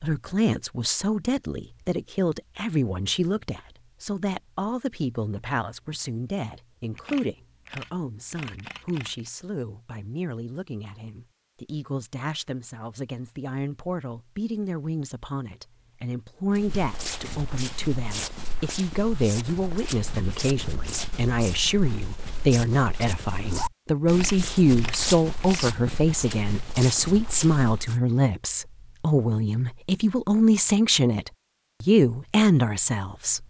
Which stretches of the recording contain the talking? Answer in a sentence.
The talking can be heard from 0.0 to 33.4 s.